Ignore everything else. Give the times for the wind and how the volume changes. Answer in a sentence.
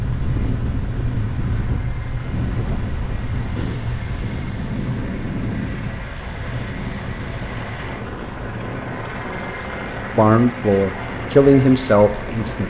The wind can be heard from 0.0 to 12.6 s, getting quieter.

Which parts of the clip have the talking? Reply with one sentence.
You can hear the talking from 10.2 to 12.6 s.